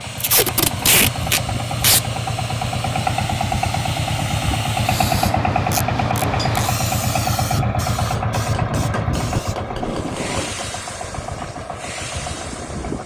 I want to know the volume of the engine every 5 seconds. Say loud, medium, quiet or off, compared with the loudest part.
loud, loud, medium.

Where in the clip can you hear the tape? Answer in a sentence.
The tape can be heard from 0.2 to 2.0 s, from 5.7 to 6.7 s and from 9.7 to 10.6 s.